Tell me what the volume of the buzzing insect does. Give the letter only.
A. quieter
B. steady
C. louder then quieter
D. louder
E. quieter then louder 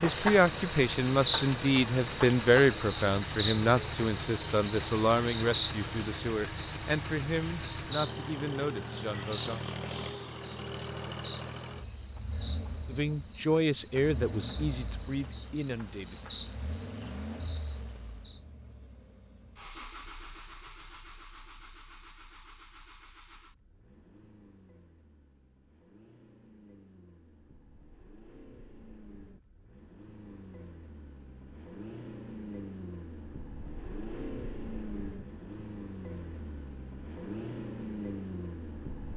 A.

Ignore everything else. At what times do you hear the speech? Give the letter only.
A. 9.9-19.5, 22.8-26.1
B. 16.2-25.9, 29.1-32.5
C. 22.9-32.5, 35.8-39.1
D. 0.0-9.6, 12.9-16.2
D.